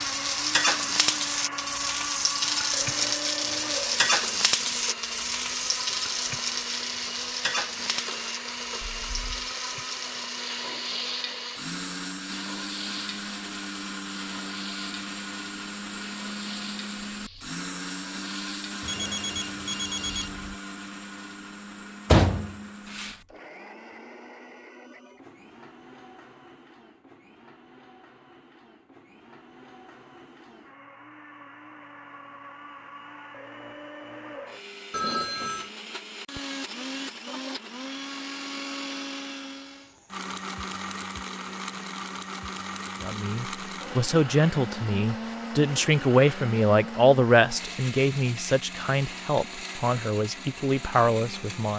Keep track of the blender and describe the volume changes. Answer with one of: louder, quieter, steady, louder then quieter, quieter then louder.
quieter then louder.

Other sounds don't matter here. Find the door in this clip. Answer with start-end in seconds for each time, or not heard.
22.1-23.1.